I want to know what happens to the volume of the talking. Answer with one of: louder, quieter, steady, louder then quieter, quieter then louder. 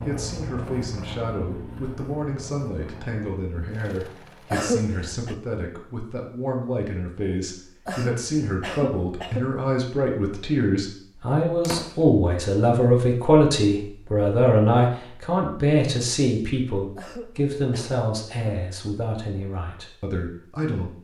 louder then quieter.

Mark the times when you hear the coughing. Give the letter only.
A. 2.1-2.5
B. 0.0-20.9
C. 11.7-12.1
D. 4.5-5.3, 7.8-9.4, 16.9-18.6
D.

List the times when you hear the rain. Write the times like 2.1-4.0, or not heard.
not heard.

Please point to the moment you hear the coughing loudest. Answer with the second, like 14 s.
5 s.